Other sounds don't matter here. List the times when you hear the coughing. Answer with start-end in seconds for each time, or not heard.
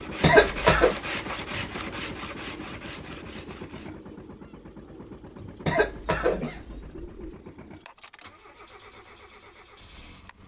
0.2-0.9, 5.7-7.3.